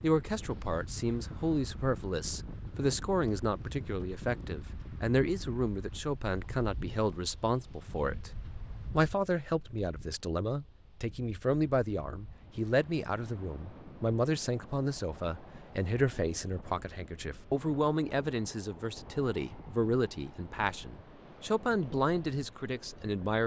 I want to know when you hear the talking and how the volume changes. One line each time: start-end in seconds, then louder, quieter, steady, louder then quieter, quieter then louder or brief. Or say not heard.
0.0-23.4 steady.